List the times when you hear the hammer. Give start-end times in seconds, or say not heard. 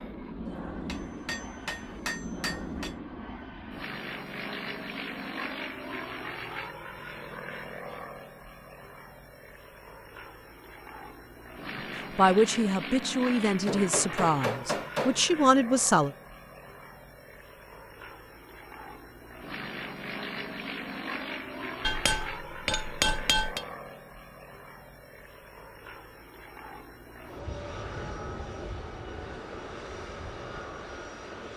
0.5-3.0, 13.4-15.2, 21.8-23.6.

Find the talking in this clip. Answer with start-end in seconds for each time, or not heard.
12.2-16.1.